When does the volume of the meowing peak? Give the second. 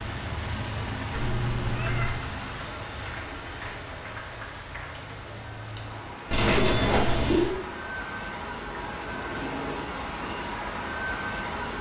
7 s.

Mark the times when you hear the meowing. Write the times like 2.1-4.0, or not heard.
1.1-2.2, 6.3-7.5.